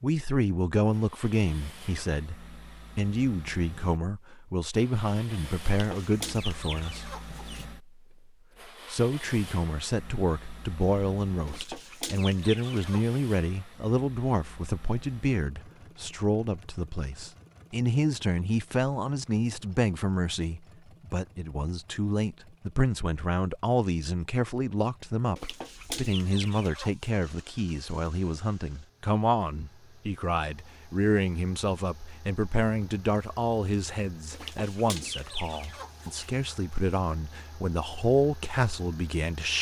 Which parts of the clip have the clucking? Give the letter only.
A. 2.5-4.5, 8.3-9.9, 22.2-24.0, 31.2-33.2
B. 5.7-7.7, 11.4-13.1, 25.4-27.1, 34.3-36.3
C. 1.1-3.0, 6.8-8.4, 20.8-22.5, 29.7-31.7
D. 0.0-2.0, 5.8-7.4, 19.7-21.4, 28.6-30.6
B.